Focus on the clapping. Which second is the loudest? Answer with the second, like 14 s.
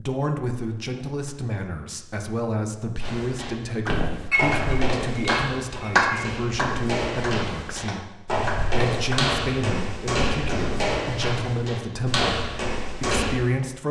6 s.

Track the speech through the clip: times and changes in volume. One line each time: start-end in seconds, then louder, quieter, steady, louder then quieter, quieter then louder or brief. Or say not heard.
0.0-13.8 steady.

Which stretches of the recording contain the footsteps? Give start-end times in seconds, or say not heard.
3.0-13.4.